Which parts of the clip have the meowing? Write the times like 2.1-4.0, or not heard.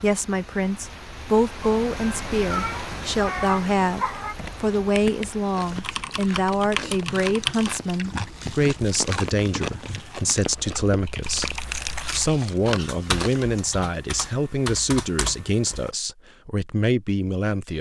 1.6-4.3.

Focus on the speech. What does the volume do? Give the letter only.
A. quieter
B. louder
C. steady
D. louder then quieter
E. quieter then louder
C.